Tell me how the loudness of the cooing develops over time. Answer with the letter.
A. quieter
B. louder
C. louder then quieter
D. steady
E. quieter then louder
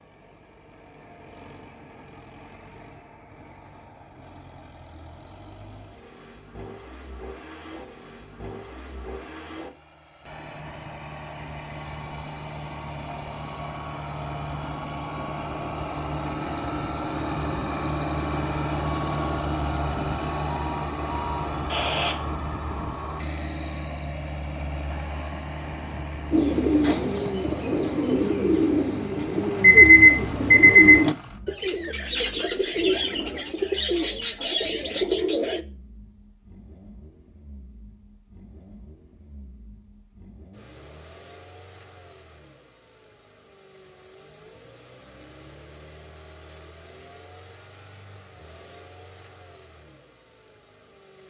D.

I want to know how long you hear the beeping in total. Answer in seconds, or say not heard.
3 s.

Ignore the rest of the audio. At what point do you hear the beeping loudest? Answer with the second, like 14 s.
30 s.